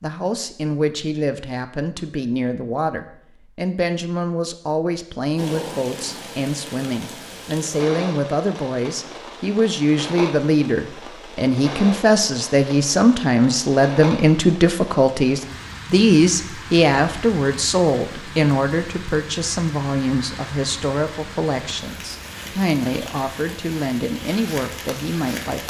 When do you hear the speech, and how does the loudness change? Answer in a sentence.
The speech can be heard from 0.0 to 25.6 s, getting louder then quieter.